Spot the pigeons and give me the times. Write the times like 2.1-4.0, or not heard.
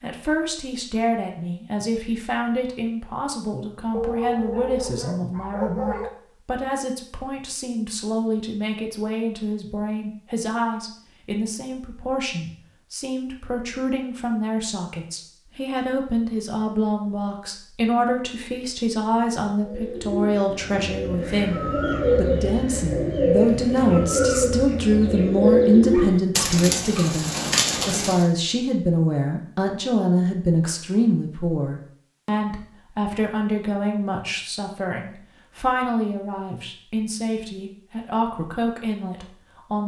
19.6-28.2.